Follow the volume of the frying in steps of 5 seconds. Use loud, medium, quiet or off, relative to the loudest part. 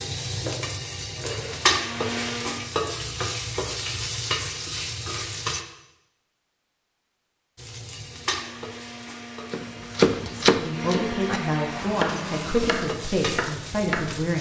loud, medium, medium.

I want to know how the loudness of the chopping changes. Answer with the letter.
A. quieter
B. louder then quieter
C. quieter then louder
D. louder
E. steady
A.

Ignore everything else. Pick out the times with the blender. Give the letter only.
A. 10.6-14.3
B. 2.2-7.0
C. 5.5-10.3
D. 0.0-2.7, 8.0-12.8
D.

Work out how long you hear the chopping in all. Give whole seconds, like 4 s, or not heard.
5 s.